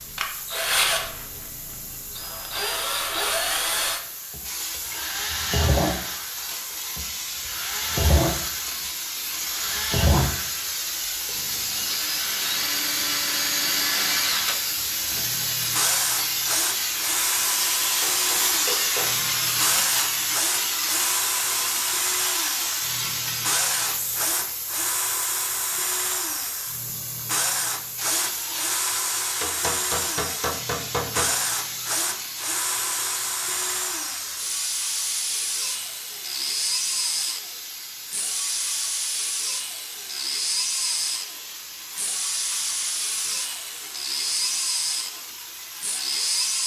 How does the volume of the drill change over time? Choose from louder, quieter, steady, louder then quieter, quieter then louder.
steady.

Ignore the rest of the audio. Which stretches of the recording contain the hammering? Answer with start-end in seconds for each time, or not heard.
18.0-19.1, 29.4-31.3.